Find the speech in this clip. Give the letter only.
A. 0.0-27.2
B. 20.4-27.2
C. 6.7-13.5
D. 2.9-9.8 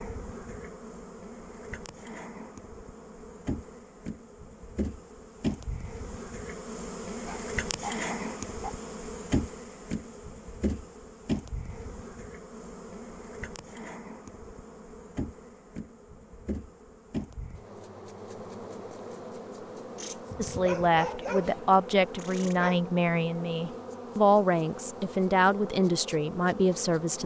B.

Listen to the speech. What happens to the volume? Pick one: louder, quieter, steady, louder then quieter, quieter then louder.
steady.